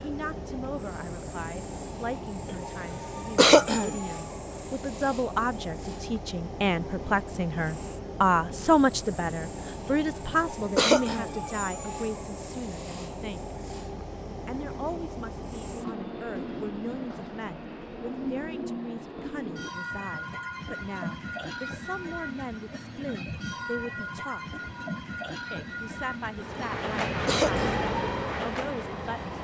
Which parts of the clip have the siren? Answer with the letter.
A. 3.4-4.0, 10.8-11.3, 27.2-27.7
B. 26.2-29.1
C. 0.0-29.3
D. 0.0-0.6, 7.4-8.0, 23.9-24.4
B.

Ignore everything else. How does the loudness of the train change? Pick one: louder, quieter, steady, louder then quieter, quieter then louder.
steady.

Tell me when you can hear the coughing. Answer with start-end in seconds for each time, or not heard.
3.4-4.0, 10.8-11.3, 27.2-27.7.